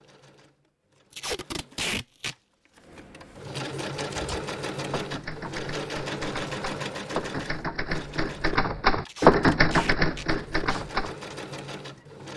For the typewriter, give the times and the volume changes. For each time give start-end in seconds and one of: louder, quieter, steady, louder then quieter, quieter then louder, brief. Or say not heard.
4.1-11.3 louder then quieter.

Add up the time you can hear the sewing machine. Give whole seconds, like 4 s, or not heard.
12 s.